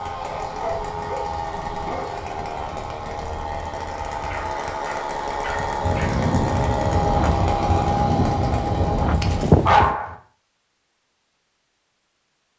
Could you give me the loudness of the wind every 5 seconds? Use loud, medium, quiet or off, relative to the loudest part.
quiet, loud, off.